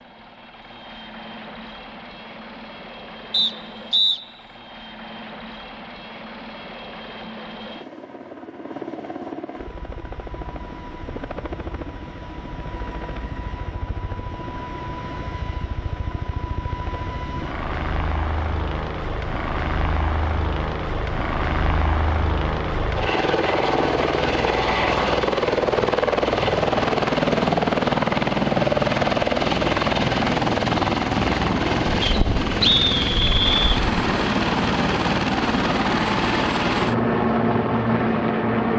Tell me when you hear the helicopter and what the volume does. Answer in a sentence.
You can hear the helicopter from 0.0 to 38.7 s, getting louder.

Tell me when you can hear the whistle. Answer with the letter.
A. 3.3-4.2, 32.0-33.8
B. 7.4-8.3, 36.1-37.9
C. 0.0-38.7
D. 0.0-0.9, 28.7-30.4
A.